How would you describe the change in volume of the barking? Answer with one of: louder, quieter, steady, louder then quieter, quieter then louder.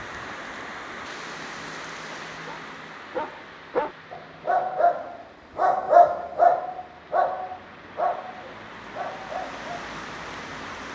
louder then quieter.